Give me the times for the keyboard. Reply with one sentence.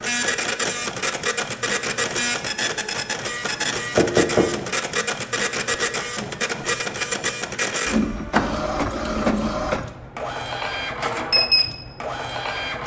You can't hear the keyboard here.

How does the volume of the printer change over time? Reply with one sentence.
The loudness of the printer stays about the same.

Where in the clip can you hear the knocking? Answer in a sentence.
You can hear the knocking from 4.0 to 5.0 s.